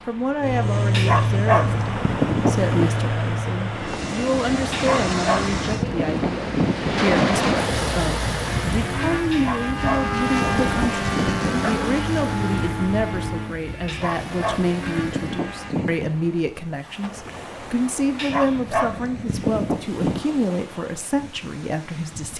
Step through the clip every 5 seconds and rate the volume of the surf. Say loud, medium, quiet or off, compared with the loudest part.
medium, loud, medium, quiet, quiet.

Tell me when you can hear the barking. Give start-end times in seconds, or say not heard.
0.9-2.9, 4.7-7.0, 9.3-11.8, 13.8-16.1, 18.1-20.2.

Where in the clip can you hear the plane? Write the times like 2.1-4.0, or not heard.
0.0-5.8, 8.4-15.8.